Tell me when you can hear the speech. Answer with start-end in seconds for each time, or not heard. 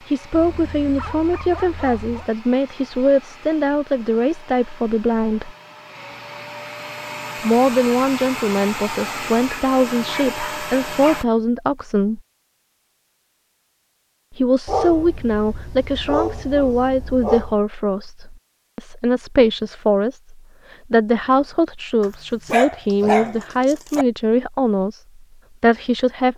0.1-5.5, 7.4-12.2, 14.3-25.0, 25.6-26.3.